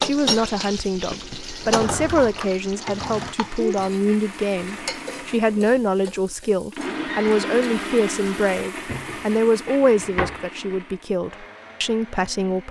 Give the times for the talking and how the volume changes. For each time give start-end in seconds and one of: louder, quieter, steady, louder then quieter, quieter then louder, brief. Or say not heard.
0.0-12.6 steady.